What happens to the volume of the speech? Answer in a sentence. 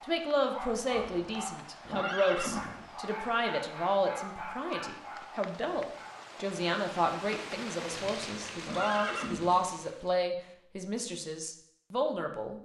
The volume of the speech stays about the same.